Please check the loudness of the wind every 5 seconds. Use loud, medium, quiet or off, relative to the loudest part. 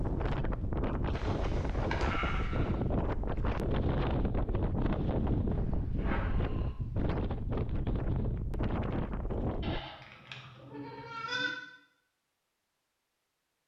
loud, loud, off.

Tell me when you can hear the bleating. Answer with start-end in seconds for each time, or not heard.
1.1-2.7, 5.5-6.7, 9.6-11.6.